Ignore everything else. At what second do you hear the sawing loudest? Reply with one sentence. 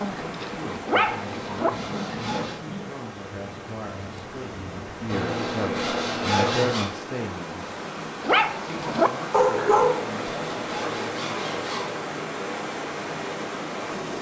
The volume of the sawing peaks at 6 seconds.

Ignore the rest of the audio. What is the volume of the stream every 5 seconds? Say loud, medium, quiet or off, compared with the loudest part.
medium, loud, loud.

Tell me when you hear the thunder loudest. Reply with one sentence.
The volume of the thunder peaks at 2 seconds.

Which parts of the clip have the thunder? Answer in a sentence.
The thunder can be heard from 1.7 to 5.1 s.